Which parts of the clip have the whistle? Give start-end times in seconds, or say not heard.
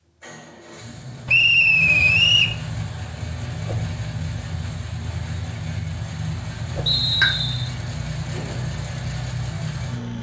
1.2-2.5, 6.8-7.7.